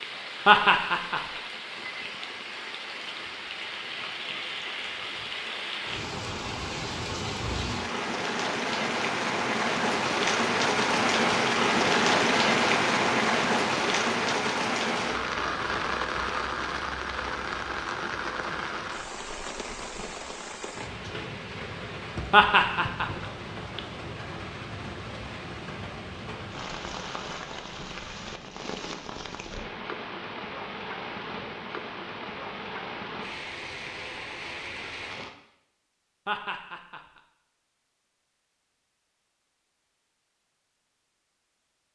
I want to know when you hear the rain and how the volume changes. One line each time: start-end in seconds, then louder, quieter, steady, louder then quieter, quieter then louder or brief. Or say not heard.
0.0-35.4 louder then quieter.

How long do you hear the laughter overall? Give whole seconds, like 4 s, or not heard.
3 s.